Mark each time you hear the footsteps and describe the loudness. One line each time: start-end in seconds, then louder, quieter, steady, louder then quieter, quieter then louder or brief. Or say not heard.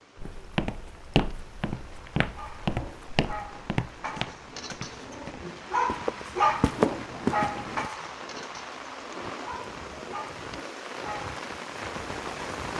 0.1-7.9 quieter then louder.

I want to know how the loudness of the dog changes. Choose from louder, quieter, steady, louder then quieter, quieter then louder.
louder then quieter.